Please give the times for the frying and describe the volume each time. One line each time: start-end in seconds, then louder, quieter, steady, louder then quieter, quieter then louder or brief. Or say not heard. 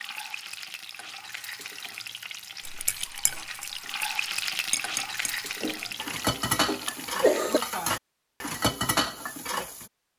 0.0-7.8 louder then quieter.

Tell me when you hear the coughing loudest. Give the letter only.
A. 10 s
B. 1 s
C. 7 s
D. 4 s
C.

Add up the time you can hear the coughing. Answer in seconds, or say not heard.
2 s.